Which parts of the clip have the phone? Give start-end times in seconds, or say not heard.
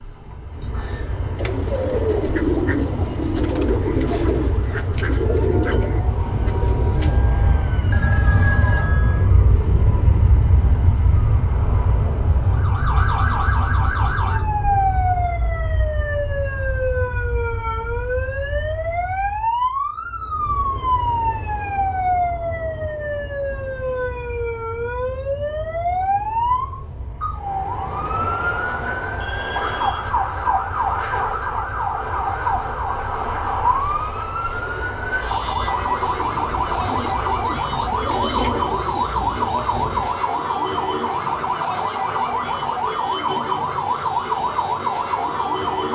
7.9-9.2, 29.2-30.1.